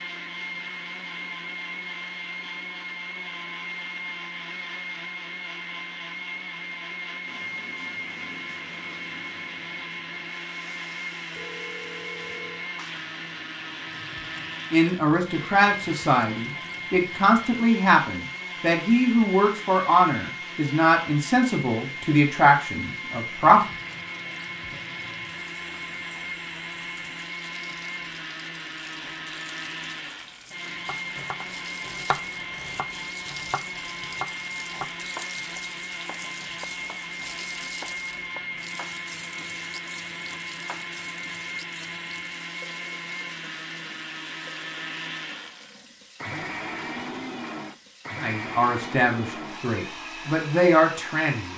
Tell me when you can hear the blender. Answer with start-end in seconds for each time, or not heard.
0.0-51.5.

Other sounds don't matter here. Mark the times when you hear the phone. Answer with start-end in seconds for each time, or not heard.
11.3-12.6.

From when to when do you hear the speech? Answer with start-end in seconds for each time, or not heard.
14.7-23.6, 48.2-51.5.